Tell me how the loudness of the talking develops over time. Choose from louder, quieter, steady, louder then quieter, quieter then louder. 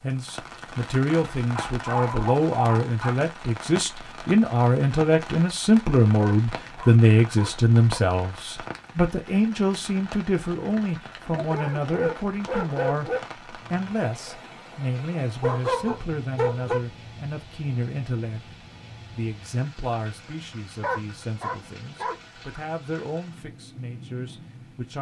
quieter.